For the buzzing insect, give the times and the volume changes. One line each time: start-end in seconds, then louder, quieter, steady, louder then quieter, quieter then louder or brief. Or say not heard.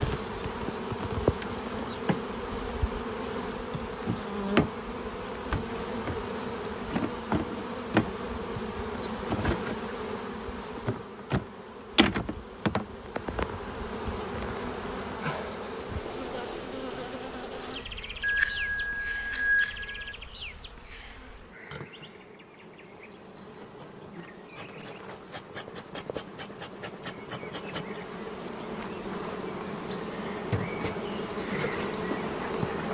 0.0-32.9 quieter then louder.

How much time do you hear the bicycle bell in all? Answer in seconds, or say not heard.
3 s.